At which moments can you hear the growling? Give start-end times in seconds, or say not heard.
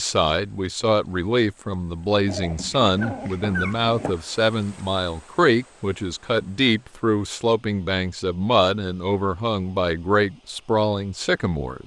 2.2-4.2.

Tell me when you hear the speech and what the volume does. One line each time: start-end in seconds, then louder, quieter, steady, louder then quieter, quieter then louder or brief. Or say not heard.
0.0-11.8 steady.